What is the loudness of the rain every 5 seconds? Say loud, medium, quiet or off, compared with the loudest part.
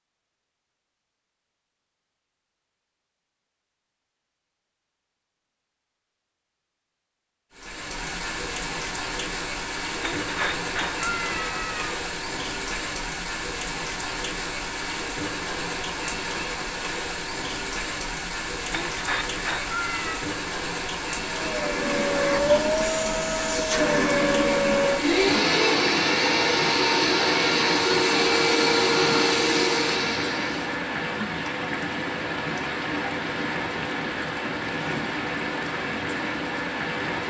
off, loud, loud, loud, loud, loud, loud, loud.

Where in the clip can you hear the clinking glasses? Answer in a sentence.
You can't hear the clinking glasses here.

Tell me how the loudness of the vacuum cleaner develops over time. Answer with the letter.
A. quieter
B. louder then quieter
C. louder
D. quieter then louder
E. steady
E.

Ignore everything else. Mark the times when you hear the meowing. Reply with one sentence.
The meowing can be heard from 10.0 to 12.0 s and from 18.7 to 20.2 s.